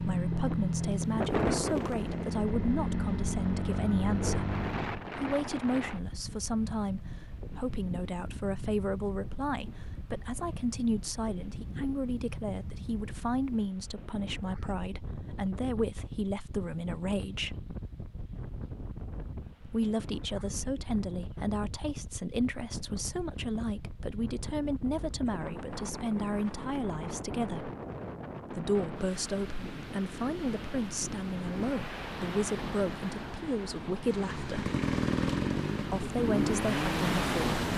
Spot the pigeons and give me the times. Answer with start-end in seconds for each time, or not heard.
not heard.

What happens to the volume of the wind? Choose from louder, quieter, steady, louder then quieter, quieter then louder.
quieter then louder.